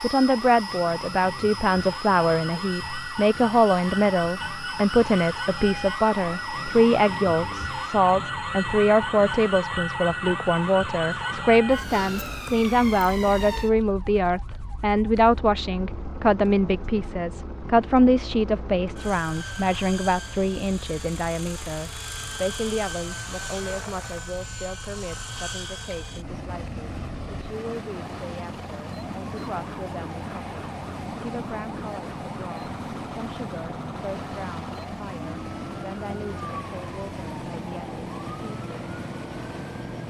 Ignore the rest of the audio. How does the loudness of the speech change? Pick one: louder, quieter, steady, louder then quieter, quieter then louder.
quieter.